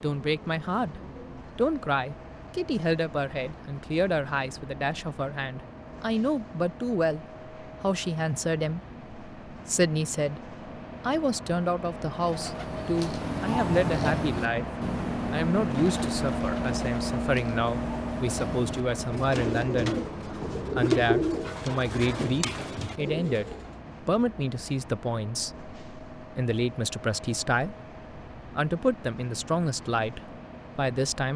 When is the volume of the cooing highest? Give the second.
21 s.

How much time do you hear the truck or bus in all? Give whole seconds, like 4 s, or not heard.
31 s.